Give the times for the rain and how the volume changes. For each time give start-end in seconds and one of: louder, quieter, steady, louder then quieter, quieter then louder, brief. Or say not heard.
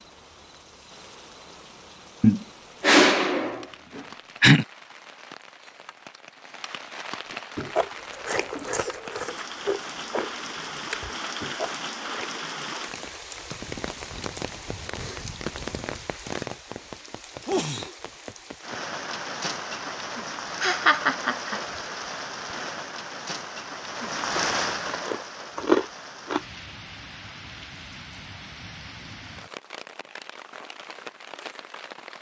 0.0-32.1 louder then quieter.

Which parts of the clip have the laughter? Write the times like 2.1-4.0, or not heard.
2.2-4.7, 20.6-21.6.